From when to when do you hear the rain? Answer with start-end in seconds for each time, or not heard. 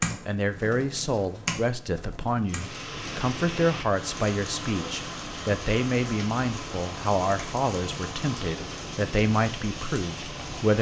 2.5-10.7.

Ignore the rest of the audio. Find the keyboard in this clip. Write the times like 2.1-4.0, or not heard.
0.0-2.8.